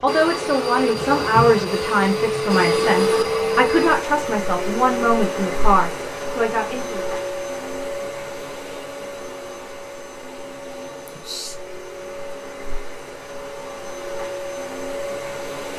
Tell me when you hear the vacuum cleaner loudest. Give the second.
3 s.